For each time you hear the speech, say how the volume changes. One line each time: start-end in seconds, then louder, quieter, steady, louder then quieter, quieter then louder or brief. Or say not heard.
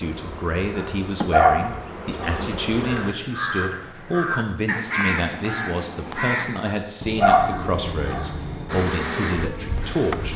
0.0-10.3 steady.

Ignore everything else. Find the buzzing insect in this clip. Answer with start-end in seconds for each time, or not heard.
0.0-3.1, 8.7-10.3.